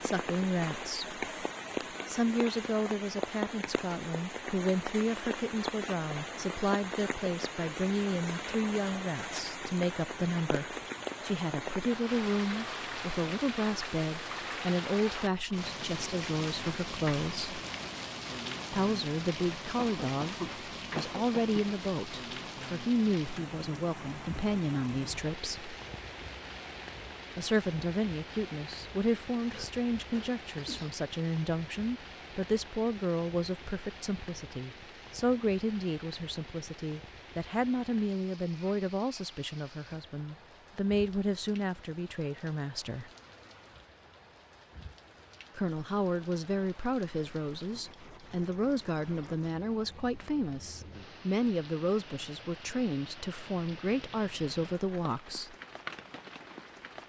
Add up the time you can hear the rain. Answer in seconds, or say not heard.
57 s.